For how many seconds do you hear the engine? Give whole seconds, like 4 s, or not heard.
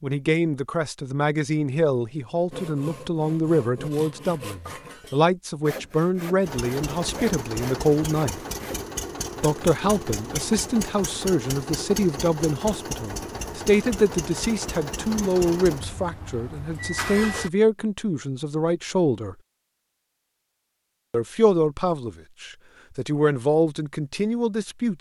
11 s.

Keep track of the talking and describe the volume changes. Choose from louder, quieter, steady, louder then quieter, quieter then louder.
steady.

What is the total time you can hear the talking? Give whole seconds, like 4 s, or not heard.
22 s.